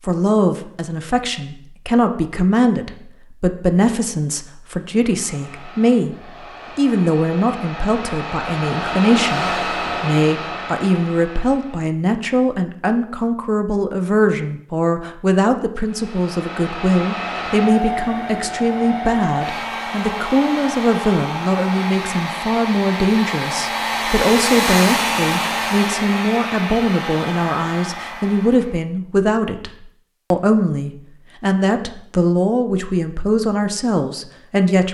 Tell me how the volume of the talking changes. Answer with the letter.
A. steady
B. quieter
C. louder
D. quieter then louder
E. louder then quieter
A.